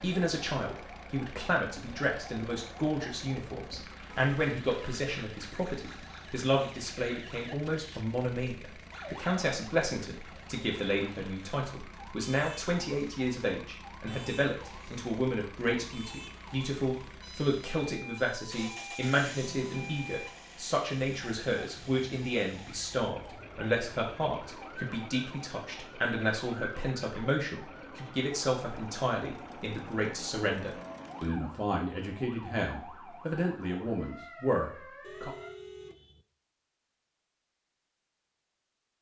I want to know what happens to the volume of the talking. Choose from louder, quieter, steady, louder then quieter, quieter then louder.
steady.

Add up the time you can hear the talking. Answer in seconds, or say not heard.
35 s.